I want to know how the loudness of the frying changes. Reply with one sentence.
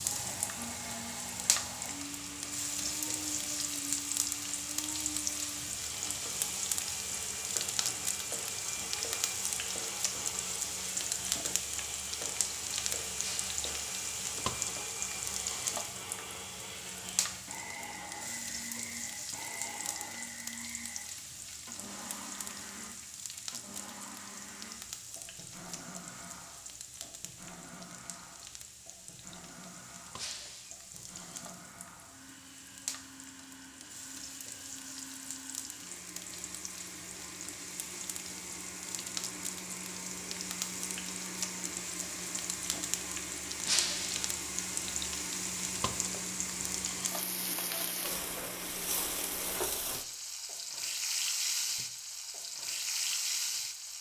The volume of the frying goes down, then up.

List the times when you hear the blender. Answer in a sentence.
The blender can be heard from 0.0 to 49.6 s.